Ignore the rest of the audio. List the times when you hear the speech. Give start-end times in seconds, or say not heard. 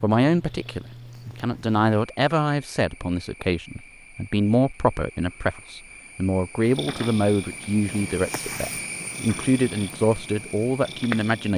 0.0-11.5.